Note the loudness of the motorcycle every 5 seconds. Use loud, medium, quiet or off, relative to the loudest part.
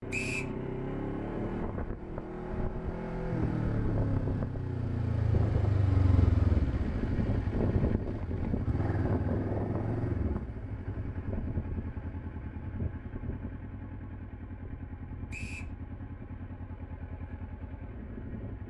loud, loud, medium, quiet.